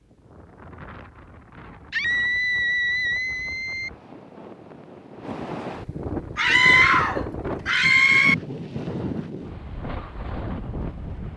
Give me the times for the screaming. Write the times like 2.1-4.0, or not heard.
1.9-3.9, 6.3-8.3.